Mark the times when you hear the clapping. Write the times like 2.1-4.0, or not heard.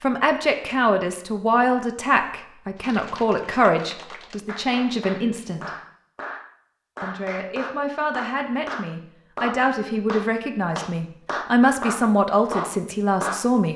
2.8-13.5.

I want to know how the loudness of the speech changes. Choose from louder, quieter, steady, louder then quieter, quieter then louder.
quieter then louder.